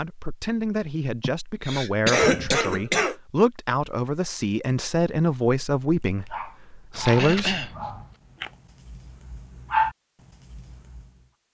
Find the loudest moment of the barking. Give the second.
10 s.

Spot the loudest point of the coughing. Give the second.
2 s.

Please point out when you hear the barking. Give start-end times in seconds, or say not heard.
6.0-11.1.